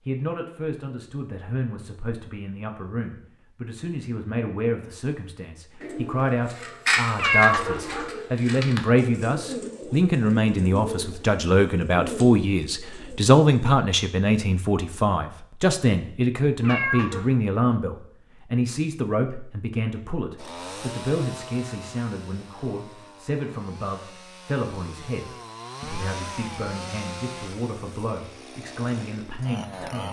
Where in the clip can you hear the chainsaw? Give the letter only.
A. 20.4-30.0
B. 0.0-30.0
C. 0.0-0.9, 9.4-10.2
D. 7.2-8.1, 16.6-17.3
A.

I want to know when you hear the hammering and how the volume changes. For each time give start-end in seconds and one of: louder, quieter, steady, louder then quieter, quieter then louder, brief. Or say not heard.
not heard.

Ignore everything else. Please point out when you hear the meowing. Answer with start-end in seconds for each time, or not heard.
7.2-8.1, 16.6-17.3.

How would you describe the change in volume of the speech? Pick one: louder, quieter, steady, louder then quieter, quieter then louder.
louder then quieter.